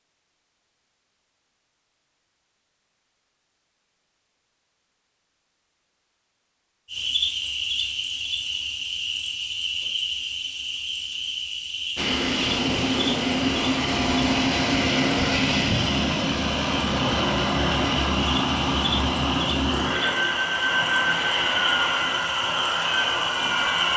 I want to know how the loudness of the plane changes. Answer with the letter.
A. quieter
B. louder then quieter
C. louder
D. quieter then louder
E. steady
E.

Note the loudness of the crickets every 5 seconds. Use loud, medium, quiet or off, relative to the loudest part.
off, loud, loud, loud, loud.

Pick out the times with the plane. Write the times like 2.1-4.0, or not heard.
11.9-23.9.